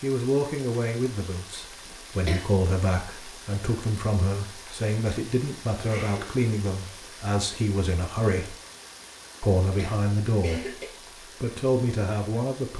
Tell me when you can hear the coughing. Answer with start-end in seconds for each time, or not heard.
1.9-2.5, 5.8-6.5, 9.8-10.9.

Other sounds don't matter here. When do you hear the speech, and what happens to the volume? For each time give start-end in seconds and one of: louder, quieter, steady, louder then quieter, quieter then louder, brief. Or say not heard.
0.0-8.6 steady
9.4-10.8 brief
11.4-12.7 brief.